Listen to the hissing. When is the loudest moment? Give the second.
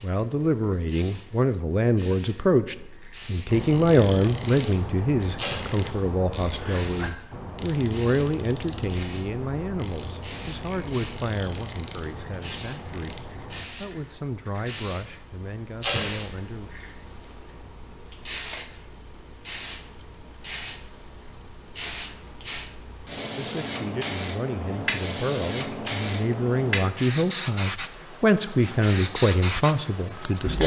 29 s.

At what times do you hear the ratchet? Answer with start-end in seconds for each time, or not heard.
3.5-13.7.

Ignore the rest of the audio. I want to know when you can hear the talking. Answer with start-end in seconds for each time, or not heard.
0.0-16.7, 23.4-30.6.